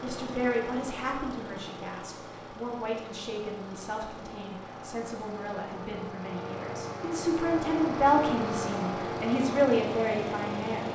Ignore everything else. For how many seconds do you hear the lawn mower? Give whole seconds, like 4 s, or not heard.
11 s.